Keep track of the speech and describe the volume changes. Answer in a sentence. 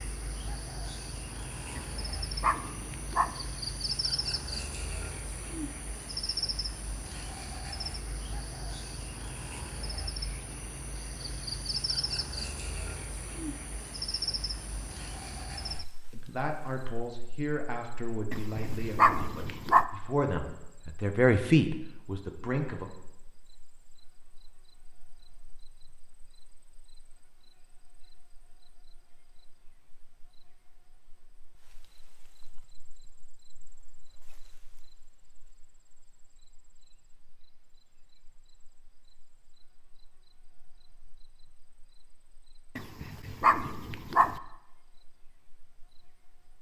The volume of the speech goes down, then up.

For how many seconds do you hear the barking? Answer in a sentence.
The barking can be heard for 5 seconds in total.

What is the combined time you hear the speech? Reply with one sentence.
The speech can be heard for 7 seconds in total.